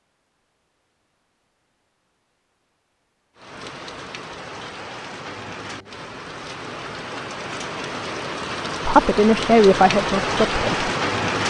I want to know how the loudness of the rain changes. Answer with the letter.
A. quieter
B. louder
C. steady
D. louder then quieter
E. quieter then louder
B.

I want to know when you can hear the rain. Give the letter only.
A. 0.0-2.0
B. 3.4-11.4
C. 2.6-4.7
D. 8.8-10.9
B.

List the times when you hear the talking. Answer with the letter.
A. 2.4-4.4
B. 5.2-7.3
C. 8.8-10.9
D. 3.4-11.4
C.